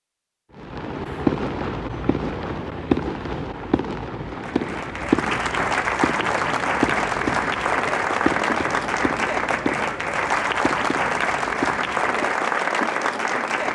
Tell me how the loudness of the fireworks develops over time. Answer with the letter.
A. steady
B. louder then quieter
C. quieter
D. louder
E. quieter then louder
C.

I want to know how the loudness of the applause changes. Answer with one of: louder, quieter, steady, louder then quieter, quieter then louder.
steady.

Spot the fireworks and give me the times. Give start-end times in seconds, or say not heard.
0.6-12.4.